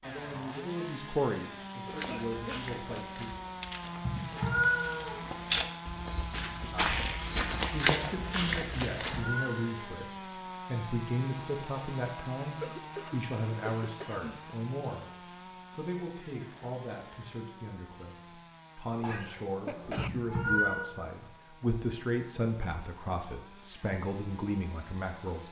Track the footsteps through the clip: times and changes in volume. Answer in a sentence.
You can hear the footsteps from 1.9 to 9.3 s, getting louder.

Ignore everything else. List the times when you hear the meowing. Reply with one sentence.
The meowing can be heard from 4.0 to 5.6 s, from 8.6 to 9.8 s and from 19.8 to 20.9 s.